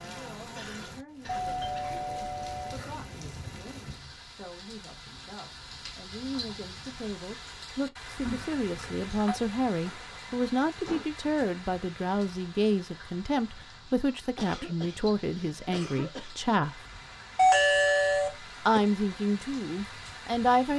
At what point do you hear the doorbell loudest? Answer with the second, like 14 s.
18 s.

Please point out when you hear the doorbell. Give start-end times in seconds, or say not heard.
1.4-2.8, 8.2-9.4, 17.4-18.8.